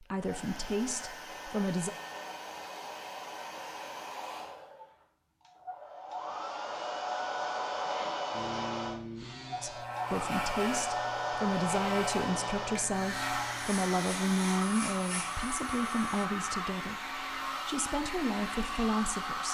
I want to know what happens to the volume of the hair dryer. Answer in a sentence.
The loudness of the hair dryer goes up.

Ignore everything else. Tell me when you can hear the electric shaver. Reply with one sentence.
You can hear the electric shaver from 8.3 to 16.2 s.